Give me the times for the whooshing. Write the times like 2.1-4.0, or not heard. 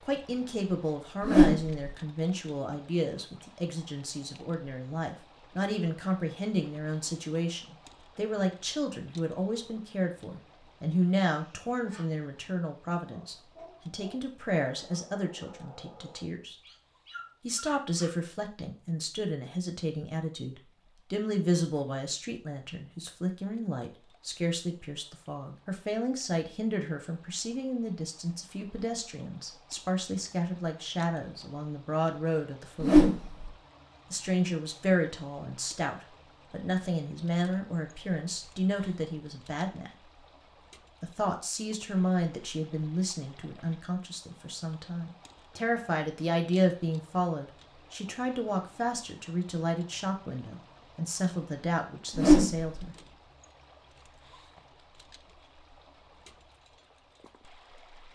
1.2-1.8, 32.8-33.5, 52.1-52.8.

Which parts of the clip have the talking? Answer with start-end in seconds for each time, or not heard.
0.0-16.6, 17.4-33.2, 34.1-39.9, 41.0-53.0.